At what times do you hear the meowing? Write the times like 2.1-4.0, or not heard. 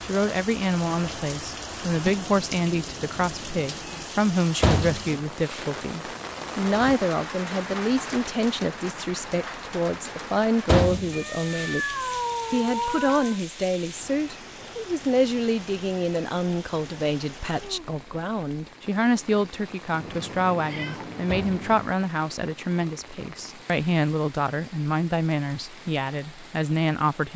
2.0-4.0, 11.1-13.4, 19.9-21.9.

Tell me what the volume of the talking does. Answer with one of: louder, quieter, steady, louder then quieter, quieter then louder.
steady.